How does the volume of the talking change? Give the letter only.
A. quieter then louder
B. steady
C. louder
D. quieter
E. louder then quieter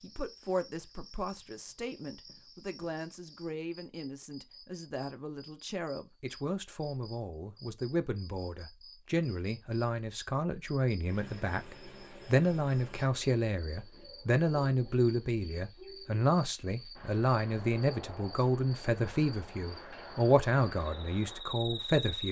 C.